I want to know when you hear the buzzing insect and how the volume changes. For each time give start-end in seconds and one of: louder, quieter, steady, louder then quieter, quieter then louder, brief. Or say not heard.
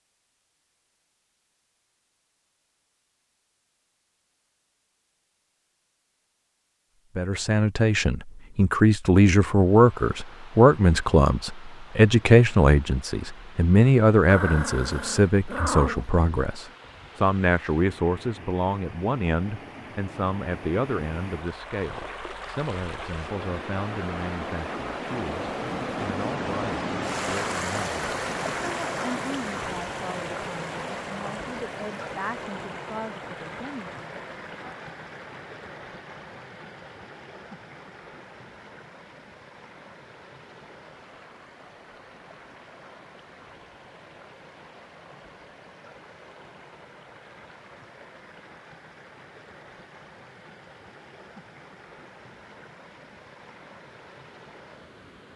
not heard.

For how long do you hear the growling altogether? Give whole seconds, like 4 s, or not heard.
2 s.